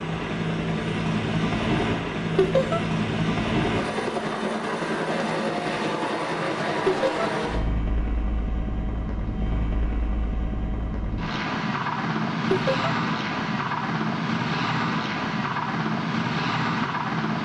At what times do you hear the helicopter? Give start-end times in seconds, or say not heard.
0.0-17.4.